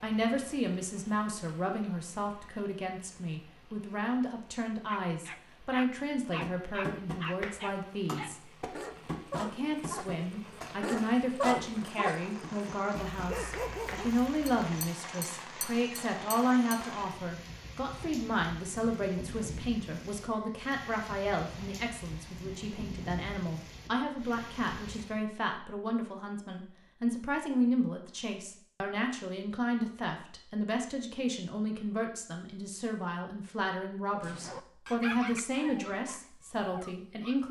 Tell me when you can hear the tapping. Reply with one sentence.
You can hear the tapping from 6.4 to 16.8 s.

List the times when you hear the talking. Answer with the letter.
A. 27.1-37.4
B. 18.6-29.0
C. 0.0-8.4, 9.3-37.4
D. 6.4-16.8
C.